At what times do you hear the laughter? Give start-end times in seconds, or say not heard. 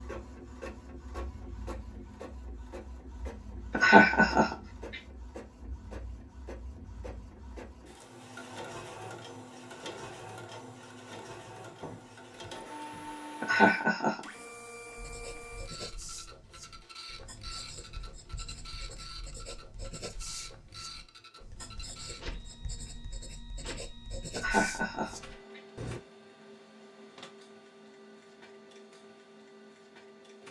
3.7-4.5, 13.4-14.2, 24.4-25.1.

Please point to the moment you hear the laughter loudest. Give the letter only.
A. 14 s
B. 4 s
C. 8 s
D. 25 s
B.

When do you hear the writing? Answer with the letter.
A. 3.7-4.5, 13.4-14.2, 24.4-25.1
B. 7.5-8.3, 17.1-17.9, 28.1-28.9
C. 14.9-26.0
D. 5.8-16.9
C.